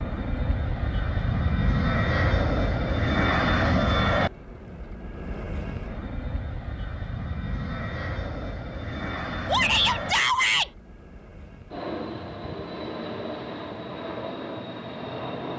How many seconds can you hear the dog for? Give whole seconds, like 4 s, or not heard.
not heard.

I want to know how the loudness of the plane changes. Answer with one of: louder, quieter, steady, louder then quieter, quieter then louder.
quieter.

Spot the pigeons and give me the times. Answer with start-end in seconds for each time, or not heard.
not heard.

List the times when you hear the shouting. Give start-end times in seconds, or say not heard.
9.4-10.7.